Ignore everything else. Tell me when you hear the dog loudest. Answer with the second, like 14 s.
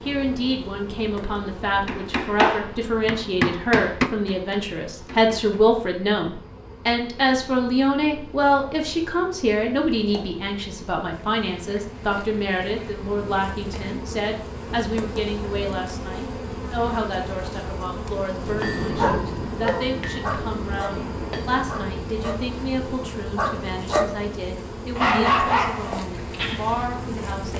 25 s.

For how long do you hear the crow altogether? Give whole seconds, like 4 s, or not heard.
not heard.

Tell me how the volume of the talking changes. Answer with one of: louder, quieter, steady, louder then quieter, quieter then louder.
quieter.